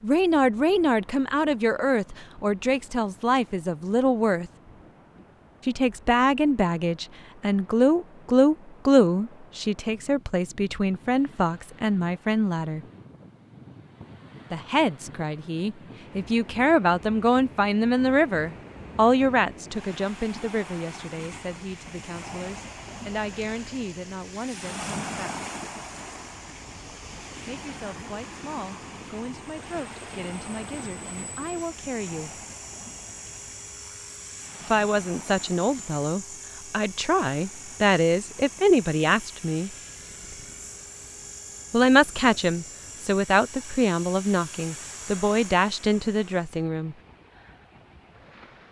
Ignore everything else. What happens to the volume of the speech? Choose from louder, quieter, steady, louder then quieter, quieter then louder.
quieter then louder.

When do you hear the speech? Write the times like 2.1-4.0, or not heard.
0.0-4.5, 5.7-12.8, 14.5-25.4, 27.4-32.3, 34.6-39.7, 41.7-47.0.